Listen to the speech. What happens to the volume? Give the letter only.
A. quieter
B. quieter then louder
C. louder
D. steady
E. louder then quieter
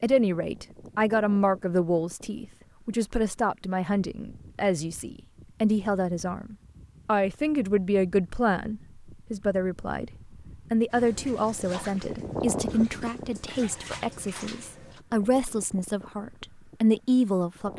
D.